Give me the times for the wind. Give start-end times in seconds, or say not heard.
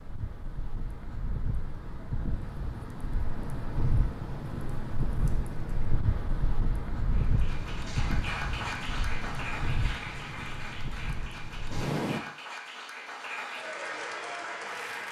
0.0-12.2.